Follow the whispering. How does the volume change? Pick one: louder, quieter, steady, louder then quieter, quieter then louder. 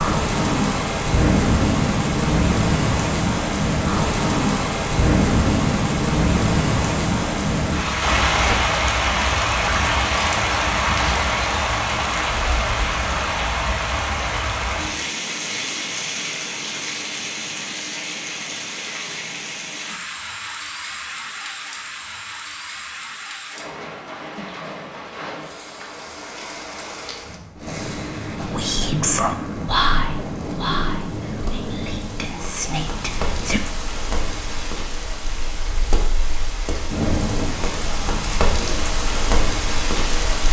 quieter then louder.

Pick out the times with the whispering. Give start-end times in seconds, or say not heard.
28.4-33.6.